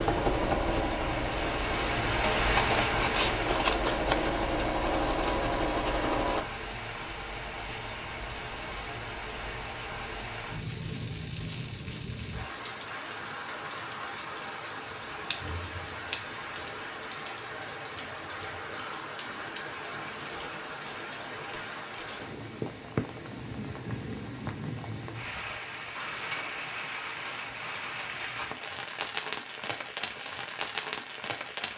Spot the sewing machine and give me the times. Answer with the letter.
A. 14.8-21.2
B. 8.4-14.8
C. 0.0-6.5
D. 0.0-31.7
C.